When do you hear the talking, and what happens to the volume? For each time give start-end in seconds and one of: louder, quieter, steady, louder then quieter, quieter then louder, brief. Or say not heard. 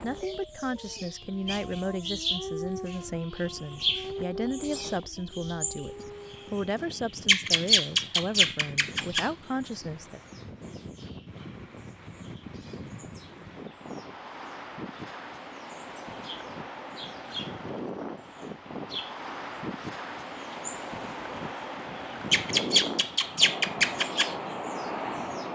0.0-10.2 steady.